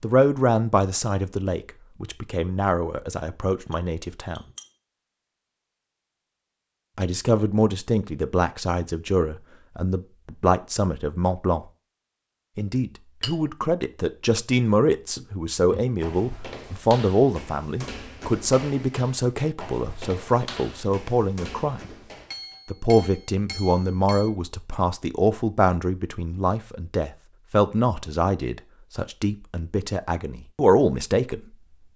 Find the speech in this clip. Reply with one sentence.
You can hear the speech from 0.0 to 4.5 s, from 7.0 to 11.7 s, from 12.6 to 21.9 s and from 22.6 to 31.6 s.